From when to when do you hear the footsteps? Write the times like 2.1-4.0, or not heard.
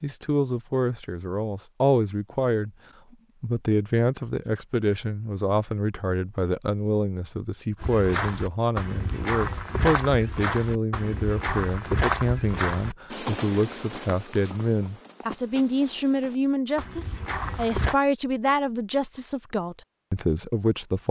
7.8-17.9.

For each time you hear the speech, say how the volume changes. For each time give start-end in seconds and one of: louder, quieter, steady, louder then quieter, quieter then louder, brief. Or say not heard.
0.0-2.7 brief
3.4-21.0 steady.